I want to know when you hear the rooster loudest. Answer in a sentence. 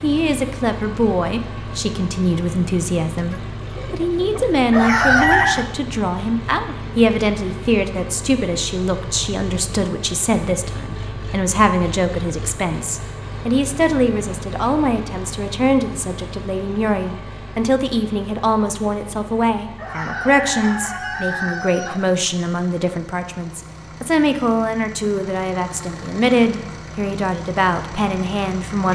The loudest moment of the rooster is at 5 seconds.